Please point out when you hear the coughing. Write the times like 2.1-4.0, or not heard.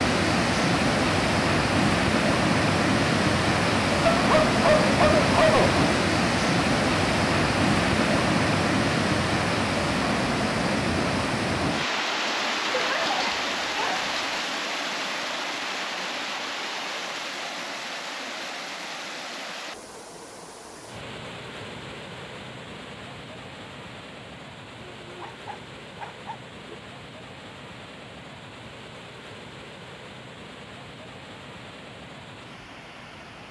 not heard.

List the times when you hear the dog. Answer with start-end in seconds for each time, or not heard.
4.1-5.8, 12.7-14.4, 25.0-26.8.